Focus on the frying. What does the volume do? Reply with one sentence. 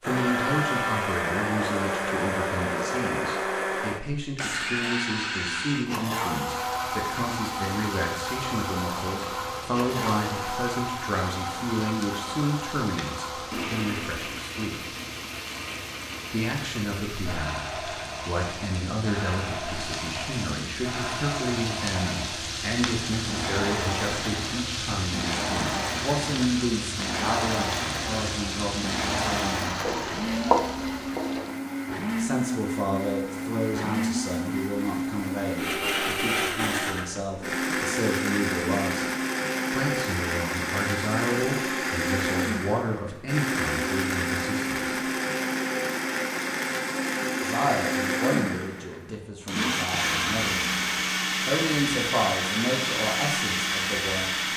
The loudness of the frying goes up.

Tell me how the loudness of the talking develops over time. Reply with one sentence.
The volume of the talking stays about the same.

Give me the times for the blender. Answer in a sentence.
The blender can be heard from 0.0 to 54.5 s.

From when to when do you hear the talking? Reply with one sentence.
The talking can be heard from 0.0 to 14.8 s, from 16.3 to 29.8 s, from 32.1 to 39.0 s, from 39.7 to 45.0 s and from 47.4 to 54.3 s.